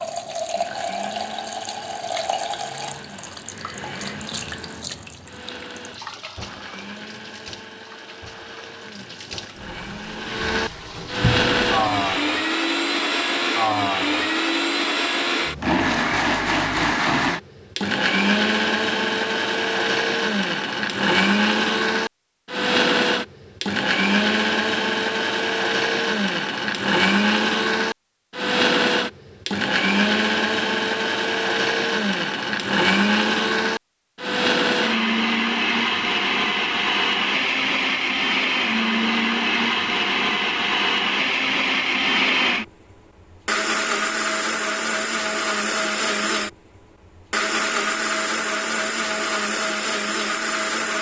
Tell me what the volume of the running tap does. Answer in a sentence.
The volume of the running tap goes down, then up.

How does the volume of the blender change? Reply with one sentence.
The volume of the blender goes up.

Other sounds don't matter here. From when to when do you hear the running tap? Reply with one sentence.
You can hear the running tap from 0.0 to 12.2 s.